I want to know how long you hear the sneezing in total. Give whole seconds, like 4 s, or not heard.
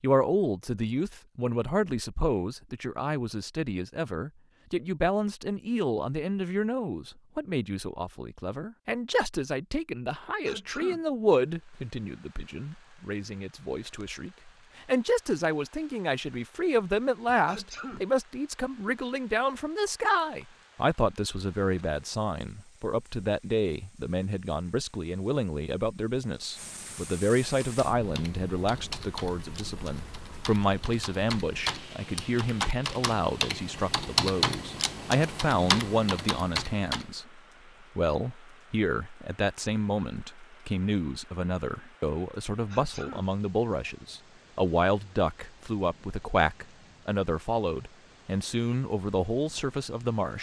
2 s.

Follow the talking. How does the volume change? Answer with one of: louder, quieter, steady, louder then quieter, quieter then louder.
steady.